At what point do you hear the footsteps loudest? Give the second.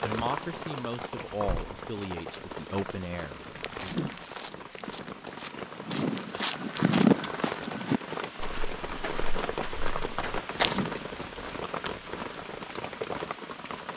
7 s.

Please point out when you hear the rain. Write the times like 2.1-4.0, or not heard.
0.0-13.9.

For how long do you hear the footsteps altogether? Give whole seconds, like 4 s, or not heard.
8 s.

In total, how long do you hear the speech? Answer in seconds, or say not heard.
4 s.